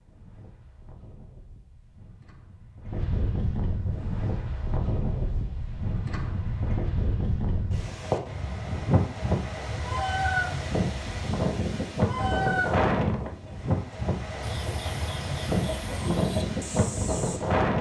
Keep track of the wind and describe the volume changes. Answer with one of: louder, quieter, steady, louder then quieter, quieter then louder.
louder.